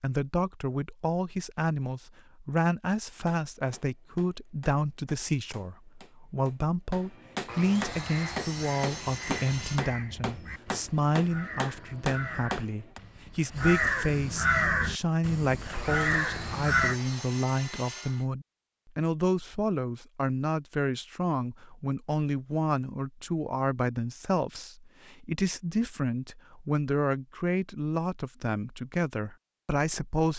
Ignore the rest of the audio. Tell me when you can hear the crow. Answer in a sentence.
You can hear the crow from 7.9 to 17.0 s.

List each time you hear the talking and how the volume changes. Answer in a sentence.
The talking can be heard from 0.0 to 30.3 s, at a steady volume.